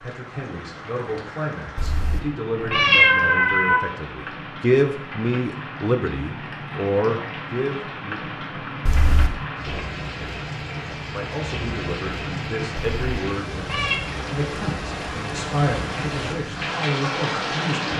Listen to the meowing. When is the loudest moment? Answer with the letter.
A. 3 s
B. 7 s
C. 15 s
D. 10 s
A.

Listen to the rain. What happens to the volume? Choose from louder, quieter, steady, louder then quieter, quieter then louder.
louder.